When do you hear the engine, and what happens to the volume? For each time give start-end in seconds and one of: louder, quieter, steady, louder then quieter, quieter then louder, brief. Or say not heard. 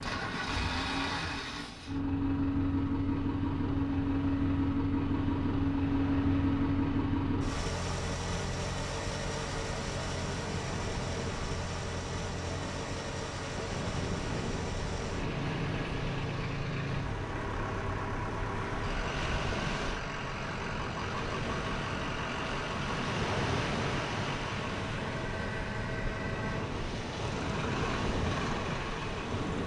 0.0-29.6 quieter.